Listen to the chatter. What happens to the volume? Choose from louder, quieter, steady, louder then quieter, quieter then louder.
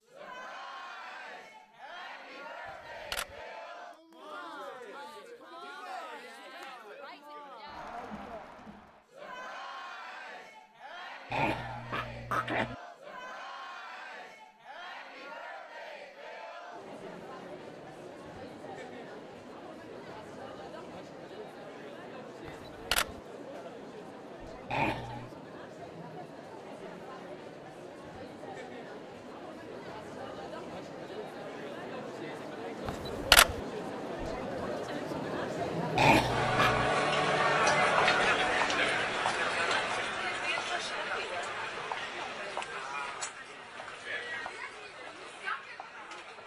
louder.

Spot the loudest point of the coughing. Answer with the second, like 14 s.
36 s.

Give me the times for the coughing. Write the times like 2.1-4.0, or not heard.
11.3-12.8, 24.6-25.3, 36.0-36.9.